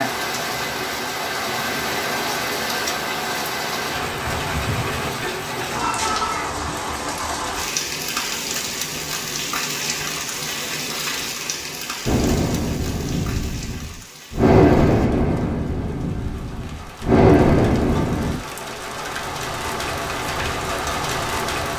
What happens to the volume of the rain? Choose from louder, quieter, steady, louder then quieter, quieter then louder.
quieter then louder.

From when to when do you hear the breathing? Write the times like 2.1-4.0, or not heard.
12.1-18.4.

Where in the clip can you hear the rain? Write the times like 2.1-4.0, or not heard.
0.0-21.7.